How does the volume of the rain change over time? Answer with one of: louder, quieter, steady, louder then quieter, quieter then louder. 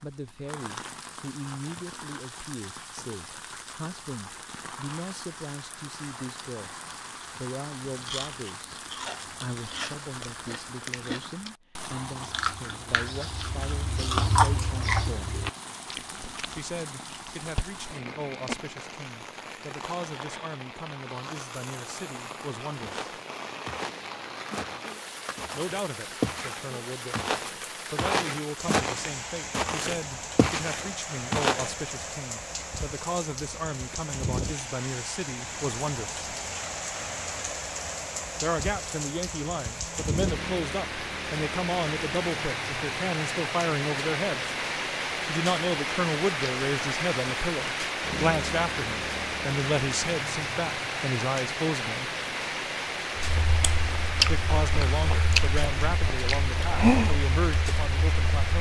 louder.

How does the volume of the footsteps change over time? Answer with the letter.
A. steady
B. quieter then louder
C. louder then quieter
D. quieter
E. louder
E.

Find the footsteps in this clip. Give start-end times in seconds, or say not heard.
22.8-31.8.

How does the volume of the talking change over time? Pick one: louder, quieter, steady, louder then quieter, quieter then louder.
louder.